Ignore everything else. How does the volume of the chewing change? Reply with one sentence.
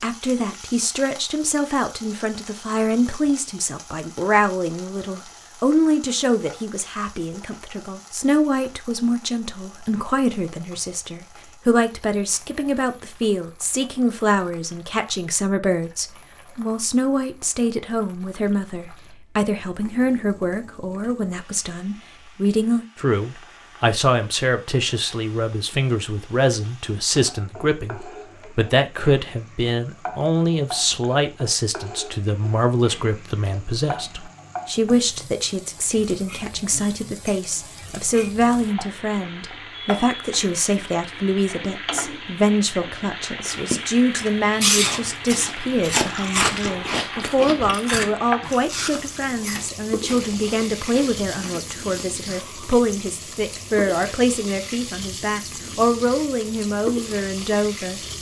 The loudness of the chewing goes down.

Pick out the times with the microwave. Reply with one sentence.
The microwave can't be heard in this clip.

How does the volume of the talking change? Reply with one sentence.
The volume of the talking stays about the same.